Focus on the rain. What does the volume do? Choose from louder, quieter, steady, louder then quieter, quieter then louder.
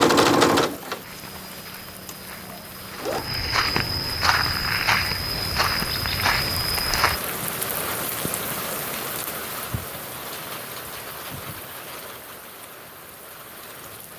louder then quieter.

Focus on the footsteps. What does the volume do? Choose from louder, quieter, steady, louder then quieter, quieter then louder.
louder.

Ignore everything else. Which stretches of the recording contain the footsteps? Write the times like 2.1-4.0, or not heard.
1.0-7.2.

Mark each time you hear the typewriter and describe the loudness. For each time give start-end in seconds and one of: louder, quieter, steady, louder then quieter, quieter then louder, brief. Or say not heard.
not heard.